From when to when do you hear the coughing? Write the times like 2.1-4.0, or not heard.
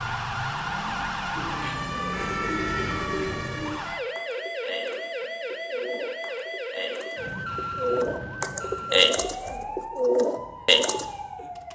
not heard.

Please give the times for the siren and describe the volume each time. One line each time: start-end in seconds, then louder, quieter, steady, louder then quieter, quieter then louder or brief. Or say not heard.
0.0-11.7 quieter.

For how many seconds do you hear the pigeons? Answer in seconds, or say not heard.
10 s.